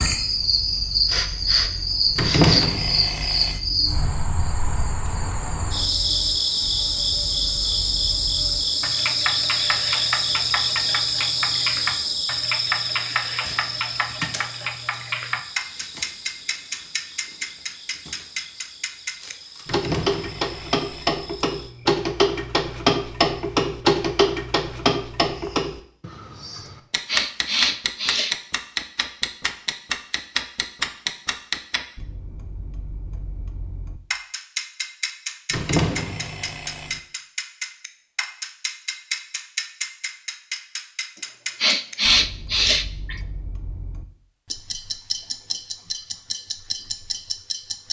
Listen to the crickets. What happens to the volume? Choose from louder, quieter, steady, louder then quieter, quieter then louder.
quieter.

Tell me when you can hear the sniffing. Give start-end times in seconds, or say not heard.
1.1-2.7, 26.6-28.4, 41.1-43.2.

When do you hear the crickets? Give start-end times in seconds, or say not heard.
0.0-25.8.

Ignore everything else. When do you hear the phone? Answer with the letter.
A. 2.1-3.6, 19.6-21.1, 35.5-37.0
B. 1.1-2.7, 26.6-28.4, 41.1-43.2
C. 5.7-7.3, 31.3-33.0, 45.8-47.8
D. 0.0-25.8
A.